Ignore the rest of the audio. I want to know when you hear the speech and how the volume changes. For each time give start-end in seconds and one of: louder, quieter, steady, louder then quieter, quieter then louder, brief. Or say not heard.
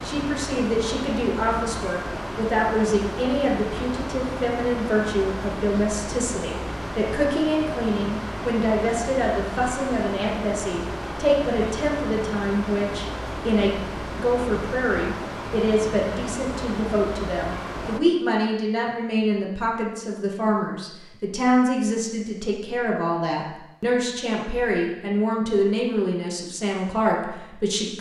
0.0-27.9 steady.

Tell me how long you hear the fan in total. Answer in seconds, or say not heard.
18 s.